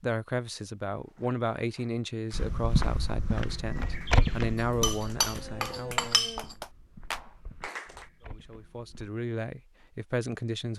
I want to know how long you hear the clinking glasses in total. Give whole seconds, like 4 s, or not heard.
2 s.